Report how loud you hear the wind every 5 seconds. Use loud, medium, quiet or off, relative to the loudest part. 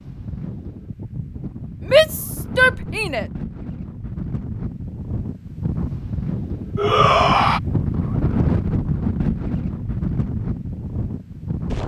medium, loud, loud.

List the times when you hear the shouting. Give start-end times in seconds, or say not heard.
1.8-3.2, 6.8-7.6.